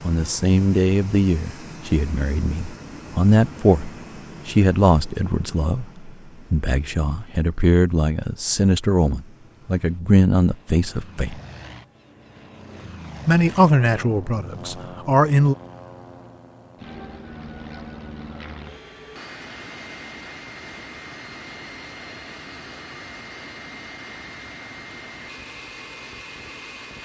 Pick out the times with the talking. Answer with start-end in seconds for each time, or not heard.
0.0-11.4, 13.2-15.6.